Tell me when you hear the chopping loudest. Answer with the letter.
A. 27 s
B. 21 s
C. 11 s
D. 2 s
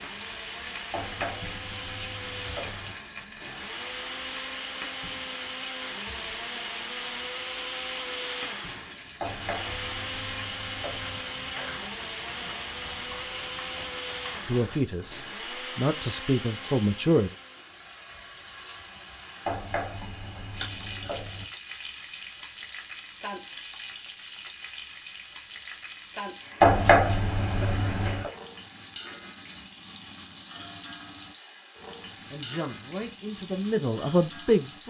A.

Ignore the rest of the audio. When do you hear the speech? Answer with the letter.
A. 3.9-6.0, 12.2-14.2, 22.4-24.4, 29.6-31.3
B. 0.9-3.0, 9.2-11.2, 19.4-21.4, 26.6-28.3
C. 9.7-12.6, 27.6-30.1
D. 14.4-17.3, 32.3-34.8
D.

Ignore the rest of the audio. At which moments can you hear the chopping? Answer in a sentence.
The chopping can be heard from 0.9 to 3.0 s, from 9.2 to 11.2 s, from 19.4 to 21.4 s and from 26.6 to 28.3 s.